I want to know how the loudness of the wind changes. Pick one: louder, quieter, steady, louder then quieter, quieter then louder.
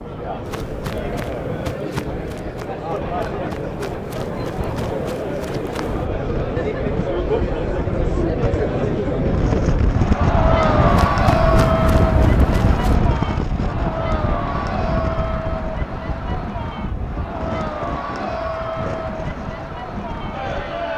louder then quieter.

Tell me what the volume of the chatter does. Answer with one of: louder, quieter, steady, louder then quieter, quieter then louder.
louder then quieter.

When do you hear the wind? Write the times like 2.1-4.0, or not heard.
0.0-20.9.